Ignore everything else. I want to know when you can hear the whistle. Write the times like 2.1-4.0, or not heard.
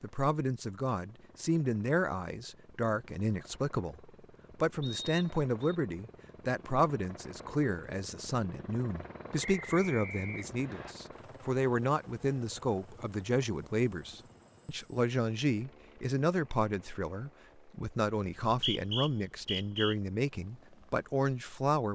4.8-5.8, 9.4-10.9, 18.2-19.9.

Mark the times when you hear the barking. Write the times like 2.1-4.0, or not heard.
not heard.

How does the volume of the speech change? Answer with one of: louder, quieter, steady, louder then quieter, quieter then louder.
steady.